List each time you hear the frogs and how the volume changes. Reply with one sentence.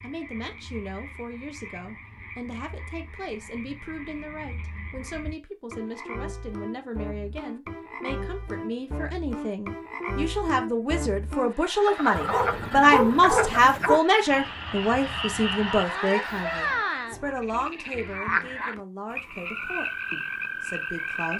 The frogs can be heard from 0.0 to 21.3 s, getting louder.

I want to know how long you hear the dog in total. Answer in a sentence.
You can hear the dog for 2 seconds altogether.